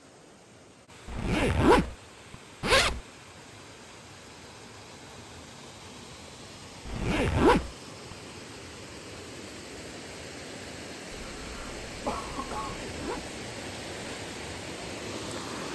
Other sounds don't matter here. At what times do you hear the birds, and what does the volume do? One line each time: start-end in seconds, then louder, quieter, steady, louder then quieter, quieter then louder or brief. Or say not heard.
not heard.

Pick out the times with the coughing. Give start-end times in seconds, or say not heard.
11.2-12.8.